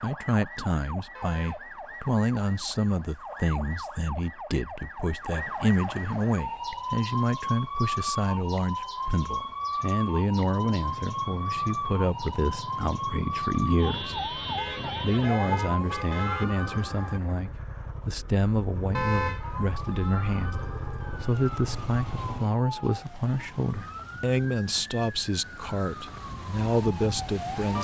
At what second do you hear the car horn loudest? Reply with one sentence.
The volume of the car horn peaks at 19 seconds.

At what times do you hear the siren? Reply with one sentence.
You can hear the siren from 0.0 to 17.2 s and from 19.4 to 27.8 s.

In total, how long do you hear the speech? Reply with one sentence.
You can hear the speech for 27 seconds altogether.